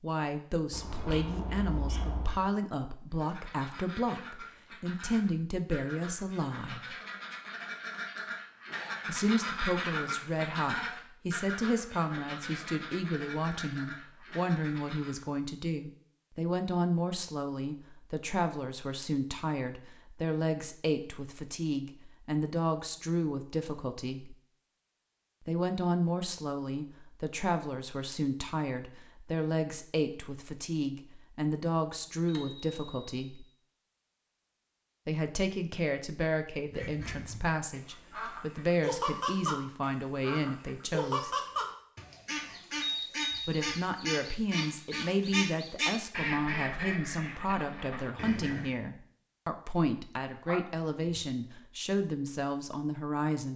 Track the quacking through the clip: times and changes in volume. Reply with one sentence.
The quacking can be heard from 3.1 to 15.2 s, getting louder then quieter; and from 36.6 to 48.8 s, at a steady volume.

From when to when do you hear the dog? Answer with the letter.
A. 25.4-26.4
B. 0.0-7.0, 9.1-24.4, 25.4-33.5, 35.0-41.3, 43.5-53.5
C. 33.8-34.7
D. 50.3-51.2
D.